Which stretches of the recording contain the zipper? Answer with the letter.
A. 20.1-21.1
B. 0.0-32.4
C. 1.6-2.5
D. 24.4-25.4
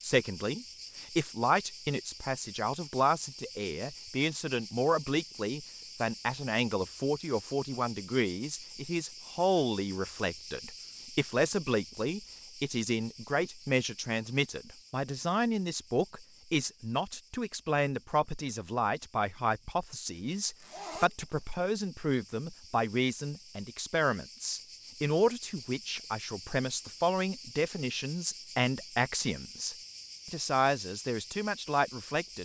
A.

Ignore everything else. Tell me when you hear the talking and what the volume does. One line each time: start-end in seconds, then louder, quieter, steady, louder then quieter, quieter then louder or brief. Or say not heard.
0.0-32.4 steady.